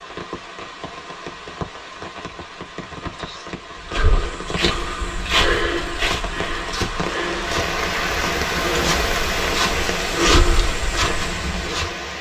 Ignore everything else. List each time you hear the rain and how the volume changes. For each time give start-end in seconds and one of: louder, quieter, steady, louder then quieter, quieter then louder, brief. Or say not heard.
0.0-12.1 louder.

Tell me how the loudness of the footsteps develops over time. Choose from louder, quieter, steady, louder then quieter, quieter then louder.
quieter then louder.